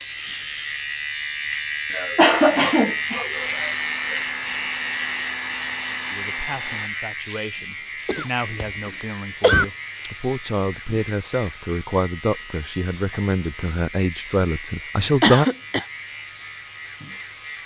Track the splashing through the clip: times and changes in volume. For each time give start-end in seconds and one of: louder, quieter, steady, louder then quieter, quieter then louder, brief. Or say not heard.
not heard.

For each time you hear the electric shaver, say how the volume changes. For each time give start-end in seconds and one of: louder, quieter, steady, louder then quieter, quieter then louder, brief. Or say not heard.
0.0-17.6 quieter.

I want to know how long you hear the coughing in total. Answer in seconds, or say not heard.
4 s.